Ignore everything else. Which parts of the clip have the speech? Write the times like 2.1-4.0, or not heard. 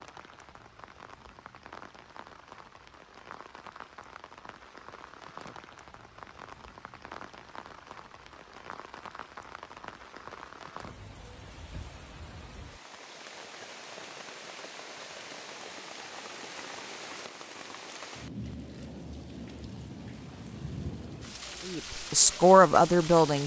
21.6-23.4.